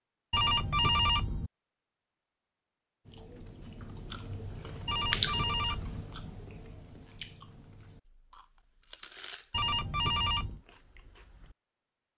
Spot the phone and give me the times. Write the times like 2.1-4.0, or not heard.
0.3-1.5, 4.8-6.0, 9.5-10.6.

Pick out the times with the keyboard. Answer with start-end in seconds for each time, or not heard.
not heard.